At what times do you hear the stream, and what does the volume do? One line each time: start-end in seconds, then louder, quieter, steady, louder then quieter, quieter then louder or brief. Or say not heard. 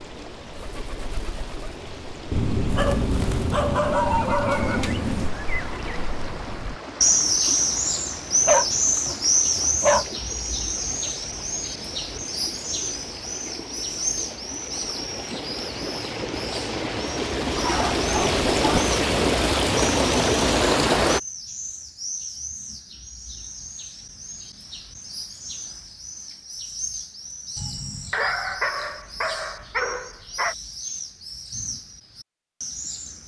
0.0-21.2 louder.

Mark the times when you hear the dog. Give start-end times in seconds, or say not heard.
2.3-5.3, 8.4-10.1, 17.6-18.8, 27.6-30.6.